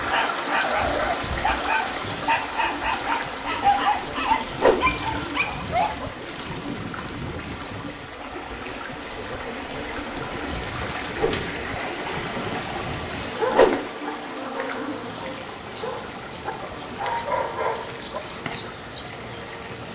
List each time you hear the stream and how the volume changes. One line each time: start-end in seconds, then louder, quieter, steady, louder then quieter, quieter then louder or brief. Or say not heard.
0.0-19.8 quieter.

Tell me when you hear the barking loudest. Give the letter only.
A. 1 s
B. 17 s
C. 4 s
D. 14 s
C.